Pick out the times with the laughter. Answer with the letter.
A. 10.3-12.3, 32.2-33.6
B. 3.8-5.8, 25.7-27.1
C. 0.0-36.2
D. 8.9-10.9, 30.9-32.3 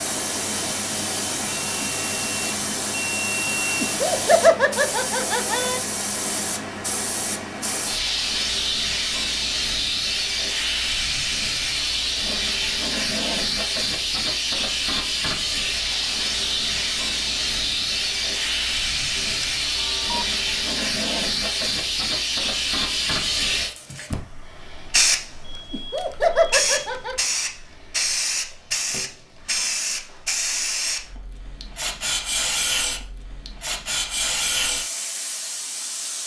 B.